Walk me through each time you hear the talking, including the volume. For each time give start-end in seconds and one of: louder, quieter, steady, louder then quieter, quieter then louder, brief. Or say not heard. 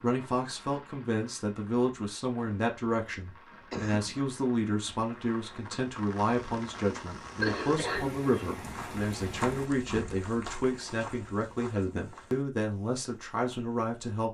0.0-14.2 steady.